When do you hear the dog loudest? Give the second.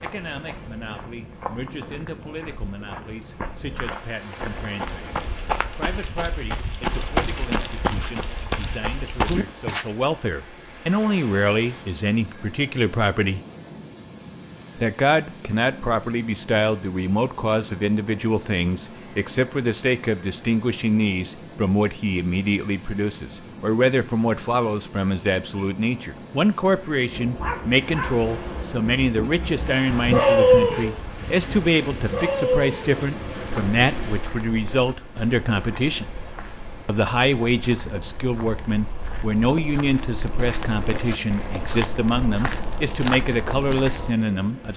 30 s.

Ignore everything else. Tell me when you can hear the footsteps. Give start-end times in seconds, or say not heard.
0.0-9.8, 33.5-44.1.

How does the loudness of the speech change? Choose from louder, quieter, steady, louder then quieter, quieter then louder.
louder.